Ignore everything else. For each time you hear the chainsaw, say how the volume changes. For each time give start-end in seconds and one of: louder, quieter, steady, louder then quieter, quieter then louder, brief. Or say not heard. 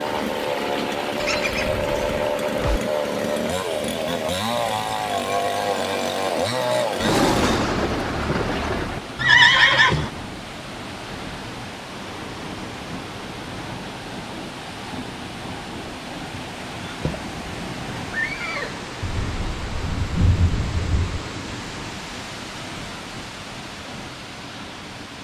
0.0-7.6 steady.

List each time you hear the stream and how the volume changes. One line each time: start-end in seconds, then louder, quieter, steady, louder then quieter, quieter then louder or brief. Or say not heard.
0.0-25.2 steady.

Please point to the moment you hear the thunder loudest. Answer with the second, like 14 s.
7 s.